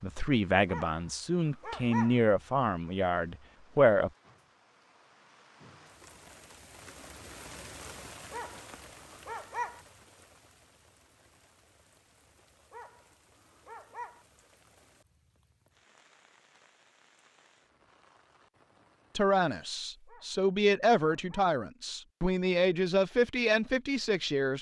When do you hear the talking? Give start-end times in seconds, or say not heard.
0.0-4.1, 19.1-24.5.